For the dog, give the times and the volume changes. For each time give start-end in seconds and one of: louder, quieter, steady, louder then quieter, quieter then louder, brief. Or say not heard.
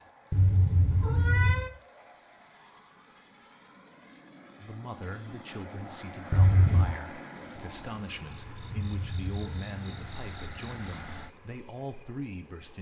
not heard.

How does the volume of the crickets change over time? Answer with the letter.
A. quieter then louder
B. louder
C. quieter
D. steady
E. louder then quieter
A.